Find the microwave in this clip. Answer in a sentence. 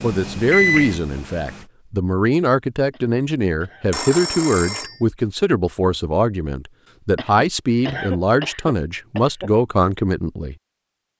You can hear the microwave from 0.0 to 1.6 s.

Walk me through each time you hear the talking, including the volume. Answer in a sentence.
You can hear the talking from 0.0 to 10.6 s, at a steady volume.